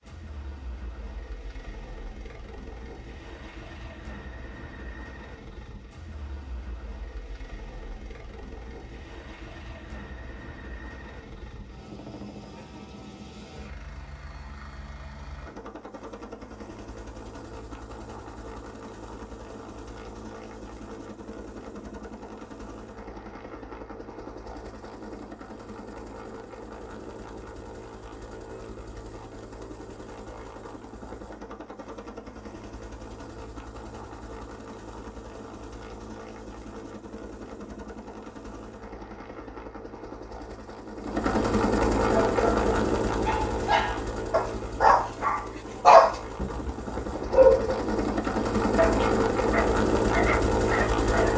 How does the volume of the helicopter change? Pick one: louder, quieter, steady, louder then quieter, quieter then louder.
louder.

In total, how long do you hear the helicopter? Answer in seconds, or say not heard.
51 s.